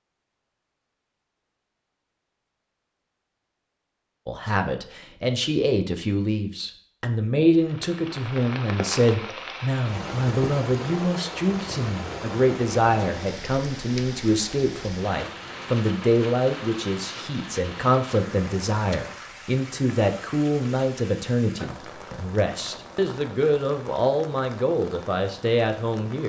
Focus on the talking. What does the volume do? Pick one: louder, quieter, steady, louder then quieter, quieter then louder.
steady.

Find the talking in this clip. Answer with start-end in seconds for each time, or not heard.
4.2-26.2.